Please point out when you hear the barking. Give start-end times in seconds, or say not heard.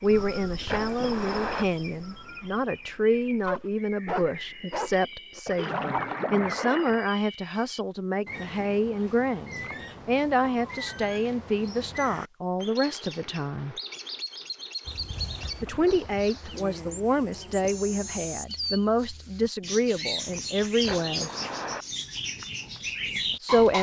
3.5-5.4.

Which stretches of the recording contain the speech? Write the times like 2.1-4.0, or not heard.
0.0-13.8, 15.6-21.3, 23.1-23.7.